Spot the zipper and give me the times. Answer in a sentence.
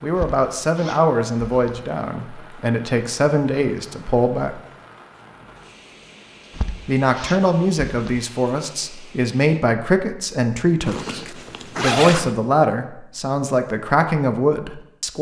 The zipper can be heard from 0.1 to 1.9 s, from 6.5 to 8.2 s and from 10.8 to 12.3 s.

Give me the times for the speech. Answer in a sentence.
The speech can be heard from 0.0 to 4.6 s and from 6.8 to 15.1 s.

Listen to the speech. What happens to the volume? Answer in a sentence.
The loudness of the speech stays about the same.